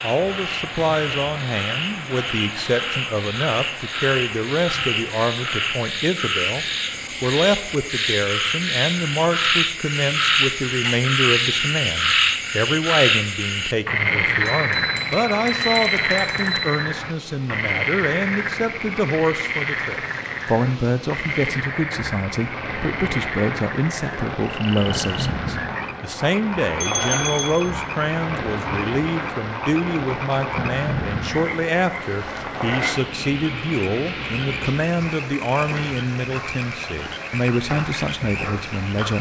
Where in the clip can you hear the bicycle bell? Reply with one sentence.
The bicycle bell can be heard from 14.4 to 16.7 s and from 26.8 to 27.7 s.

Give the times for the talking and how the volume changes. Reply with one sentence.
You can hear the talking from 0.0 to 39.1 s, at a steady volume.